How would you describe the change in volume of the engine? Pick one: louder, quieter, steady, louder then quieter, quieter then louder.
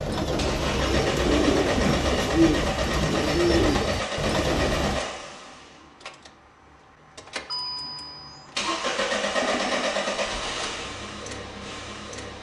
quieter then louder.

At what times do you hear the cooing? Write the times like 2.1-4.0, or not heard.
0.0-5.0.